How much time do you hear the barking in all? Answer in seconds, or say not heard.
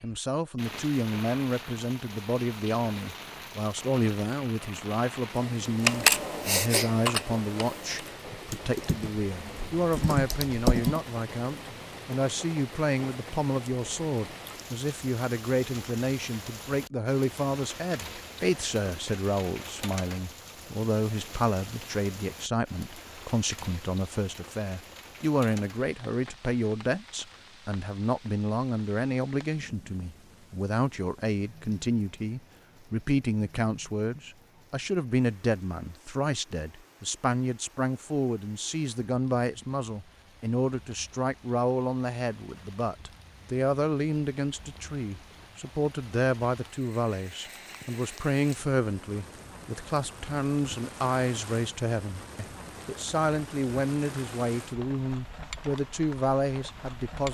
not heard.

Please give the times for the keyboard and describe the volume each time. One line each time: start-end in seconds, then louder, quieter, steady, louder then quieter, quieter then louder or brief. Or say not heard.
5.8-11.0 quieter then louder.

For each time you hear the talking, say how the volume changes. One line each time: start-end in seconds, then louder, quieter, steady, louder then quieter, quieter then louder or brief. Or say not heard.
0.0-57.2 steady.